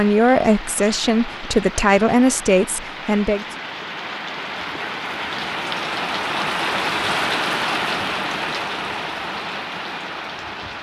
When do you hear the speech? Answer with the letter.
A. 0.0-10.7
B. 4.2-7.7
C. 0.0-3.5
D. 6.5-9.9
C.